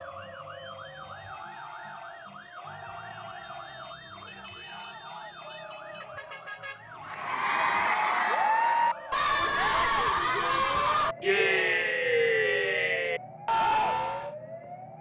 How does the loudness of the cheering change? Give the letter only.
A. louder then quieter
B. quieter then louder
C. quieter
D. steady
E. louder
D.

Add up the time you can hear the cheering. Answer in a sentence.
You can hear the cheering for 7 seconds altogether.